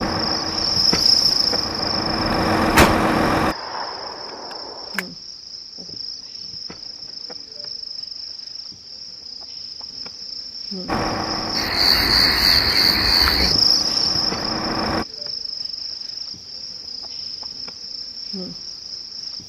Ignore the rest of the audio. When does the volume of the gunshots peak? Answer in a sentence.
The loudest moment of the gunshots is at 3 seconds.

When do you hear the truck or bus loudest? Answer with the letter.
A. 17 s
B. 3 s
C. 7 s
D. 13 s
B.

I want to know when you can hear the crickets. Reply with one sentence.
You can hear the crickets from 0.0 to 19.4 s.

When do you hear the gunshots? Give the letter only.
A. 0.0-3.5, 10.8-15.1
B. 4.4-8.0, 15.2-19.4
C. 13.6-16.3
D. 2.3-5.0
D.